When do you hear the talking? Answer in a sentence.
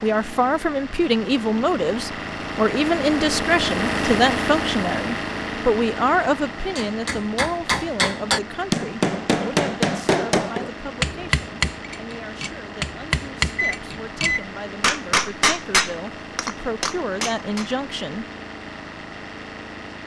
You can hear the talking from 0.0 to 18.2 s.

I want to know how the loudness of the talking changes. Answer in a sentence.
The volume of the talking goes down, then up.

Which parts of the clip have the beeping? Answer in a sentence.
The beeping can be heard from 13.6 to 14.4 s.